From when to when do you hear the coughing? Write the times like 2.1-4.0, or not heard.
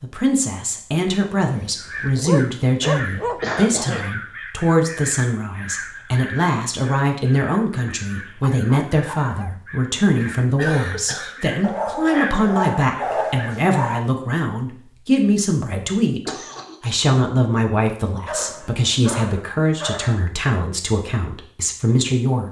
3.2-4.0, 10.1-11.4, 16.2-16.8.